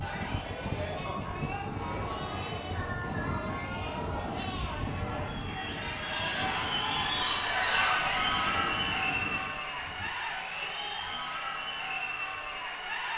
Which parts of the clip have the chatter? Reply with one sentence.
The chatter can be heard from 0.0 to 13.1 s.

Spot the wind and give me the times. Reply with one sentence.
You can hear the wind from 0.0 to 10.1 s.